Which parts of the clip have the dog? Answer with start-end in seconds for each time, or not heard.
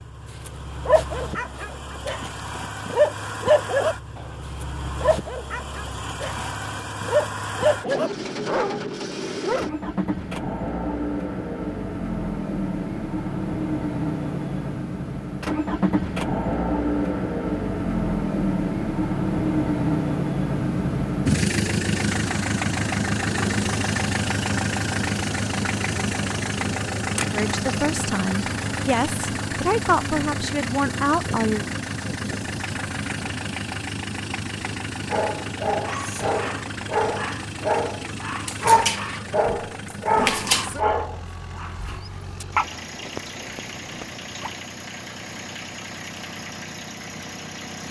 0.5-9.7, 35.0-44.5.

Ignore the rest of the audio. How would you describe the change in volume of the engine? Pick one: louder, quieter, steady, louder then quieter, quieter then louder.
louder then quieter.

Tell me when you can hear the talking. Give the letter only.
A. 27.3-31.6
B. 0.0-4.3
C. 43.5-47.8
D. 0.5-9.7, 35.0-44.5
A.